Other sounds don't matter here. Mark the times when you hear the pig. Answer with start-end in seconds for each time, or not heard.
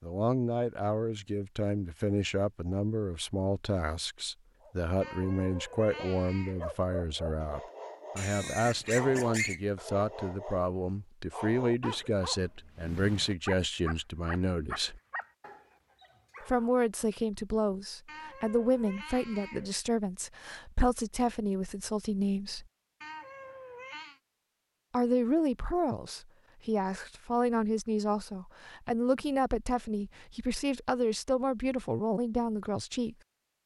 8.2-9.6.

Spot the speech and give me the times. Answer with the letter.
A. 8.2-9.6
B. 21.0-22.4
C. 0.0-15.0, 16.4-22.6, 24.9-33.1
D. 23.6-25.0
C.